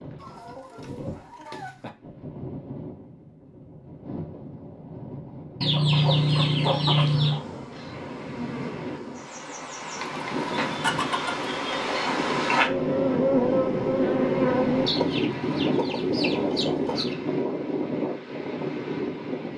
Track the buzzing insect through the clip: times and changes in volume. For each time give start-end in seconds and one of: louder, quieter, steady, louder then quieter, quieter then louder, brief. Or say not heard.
5.9-14.9 louder.